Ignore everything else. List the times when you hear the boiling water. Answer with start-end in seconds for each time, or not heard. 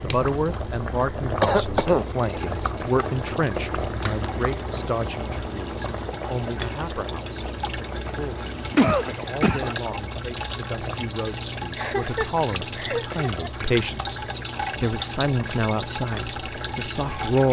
0.0-17.4.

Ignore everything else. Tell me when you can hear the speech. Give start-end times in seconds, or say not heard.
0.0-17.4.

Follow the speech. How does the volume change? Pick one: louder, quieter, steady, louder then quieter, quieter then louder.
quieter then louder.